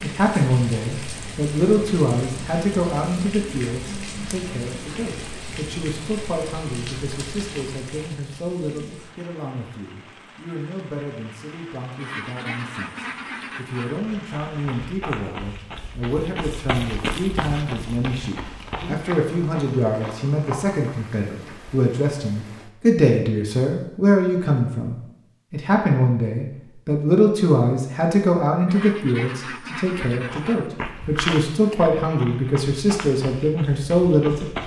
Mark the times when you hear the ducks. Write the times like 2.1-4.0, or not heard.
11.9-14.0, 28.6-30.7.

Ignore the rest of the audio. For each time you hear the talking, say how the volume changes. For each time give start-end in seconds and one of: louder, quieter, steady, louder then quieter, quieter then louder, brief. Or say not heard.
0.0-34.5 quieter then louder.